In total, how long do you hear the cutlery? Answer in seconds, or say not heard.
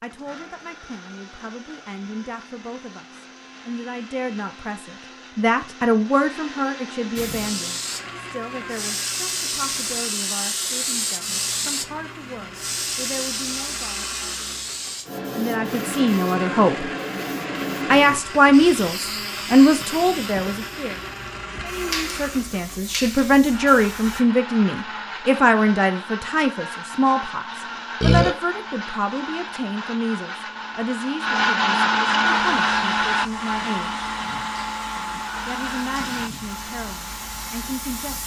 not heard.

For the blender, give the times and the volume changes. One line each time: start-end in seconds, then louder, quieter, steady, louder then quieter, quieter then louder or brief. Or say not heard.
0.0-38.2 louder.